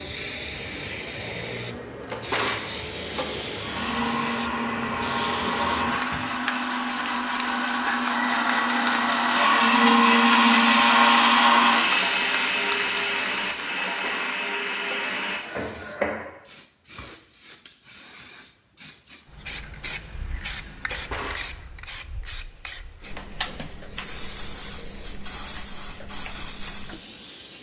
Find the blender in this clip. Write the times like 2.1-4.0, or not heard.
3.5-16.2.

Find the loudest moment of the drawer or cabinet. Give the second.
2 s.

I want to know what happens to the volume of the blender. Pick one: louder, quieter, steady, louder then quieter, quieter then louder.
louder then quieter.